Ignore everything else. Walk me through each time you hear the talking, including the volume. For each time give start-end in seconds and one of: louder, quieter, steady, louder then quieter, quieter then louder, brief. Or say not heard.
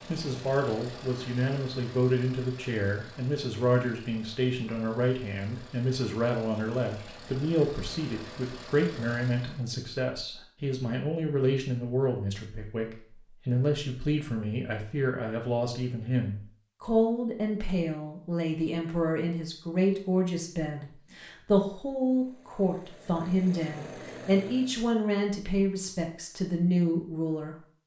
0.1-27.6 steady.